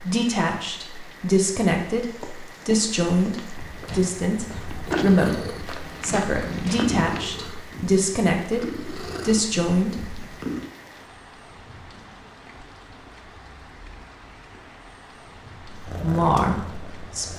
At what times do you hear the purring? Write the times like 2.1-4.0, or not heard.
4.7-10.7, 15.8-17.3.